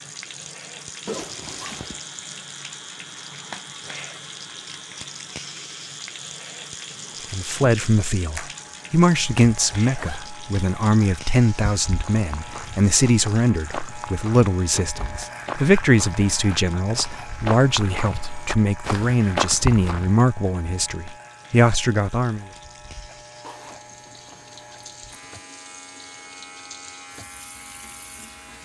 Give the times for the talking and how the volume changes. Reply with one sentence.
You can hear the talking from 7.3 to 22.4 s, at a steady volume.